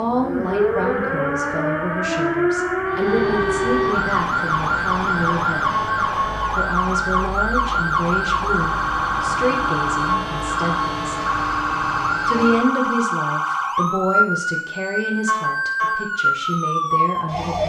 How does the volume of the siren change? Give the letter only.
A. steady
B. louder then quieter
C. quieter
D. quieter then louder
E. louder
A.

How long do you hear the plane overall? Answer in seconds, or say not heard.
10 s.